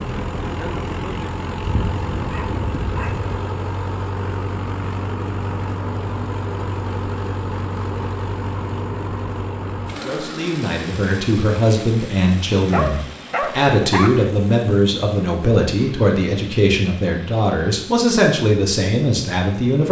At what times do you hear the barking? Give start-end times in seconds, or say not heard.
1.6-3.4, 12.7-14.3.